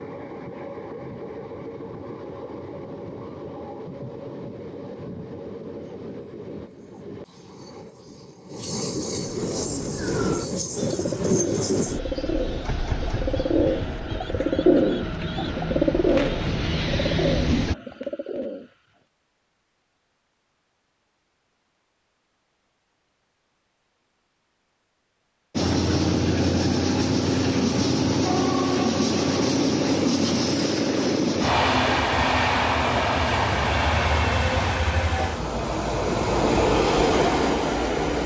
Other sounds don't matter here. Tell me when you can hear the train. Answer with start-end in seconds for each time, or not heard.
0.0-17.8, 25.6-38.2.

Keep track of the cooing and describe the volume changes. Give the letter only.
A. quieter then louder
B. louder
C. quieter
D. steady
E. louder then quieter
E.